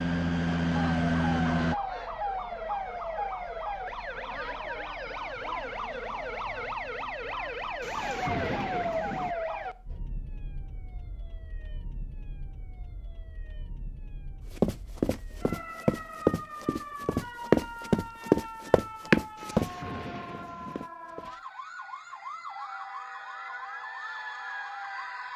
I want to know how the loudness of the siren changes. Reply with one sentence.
The loudness of the siren goes down, then up.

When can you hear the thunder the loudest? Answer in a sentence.
The loudest moment of the thunder is at 8 seconds.